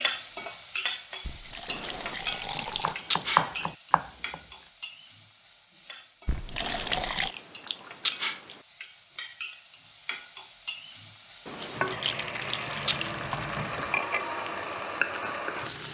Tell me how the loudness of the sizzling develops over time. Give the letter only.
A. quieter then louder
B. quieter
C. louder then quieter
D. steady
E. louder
A.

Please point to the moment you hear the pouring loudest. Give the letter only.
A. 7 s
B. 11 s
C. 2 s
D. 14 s
A.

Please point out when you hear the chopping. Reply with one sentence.
You can hear the chopping from 2.8 to 4.3 s.